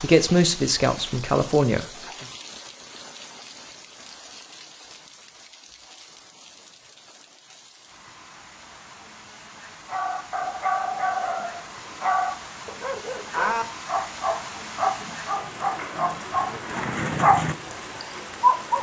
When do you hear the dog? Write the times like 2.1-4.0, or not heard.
9.8-18.7.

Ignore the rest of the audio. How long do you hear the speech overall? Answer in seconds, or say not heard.
2 s.